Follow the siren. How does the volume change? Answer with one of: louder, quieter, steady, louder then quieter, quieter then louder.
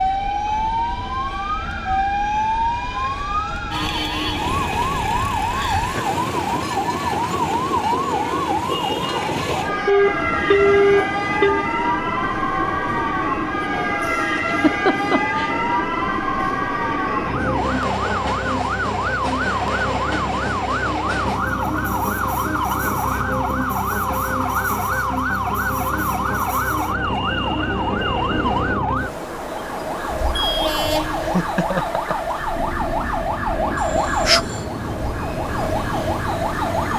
steady.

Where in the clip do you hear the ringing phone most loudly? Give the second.
11 s.